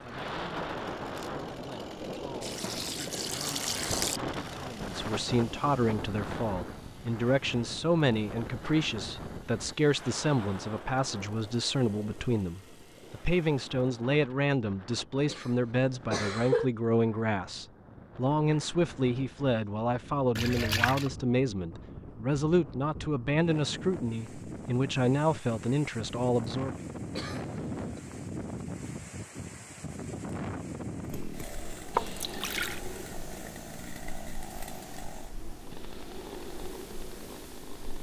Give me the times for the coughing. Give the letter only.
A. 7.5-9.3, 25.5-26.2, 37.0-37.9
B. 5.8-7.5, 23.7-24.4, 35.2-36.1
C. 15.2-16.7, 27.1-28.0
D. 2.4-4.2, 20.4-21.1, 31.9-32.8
C.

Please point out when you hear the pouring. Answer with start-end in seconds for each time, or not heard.
2.4-4.2, 20.4-21.1, 31.9-32.8.